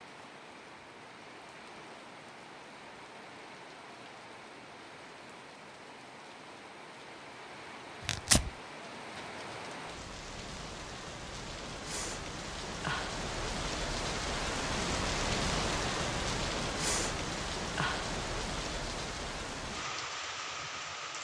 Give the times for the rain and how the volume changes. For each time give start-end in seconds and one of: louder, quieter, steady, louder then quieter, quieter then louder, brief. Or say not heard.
0.0-21.1 louder.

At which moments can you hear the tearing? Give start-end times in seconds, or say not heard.
8.1-8.5.